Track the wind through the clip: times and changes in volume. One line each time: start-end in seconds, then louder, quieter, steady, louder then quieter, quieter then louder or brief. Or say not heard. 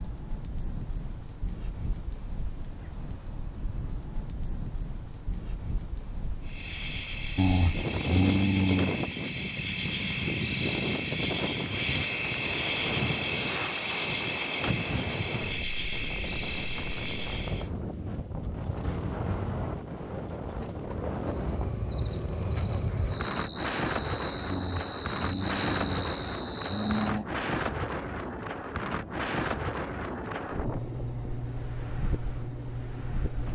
0.0-33.5 louder.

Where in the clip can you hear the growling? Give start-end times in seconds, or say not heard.
7.3-9.0, 24.4-27.2.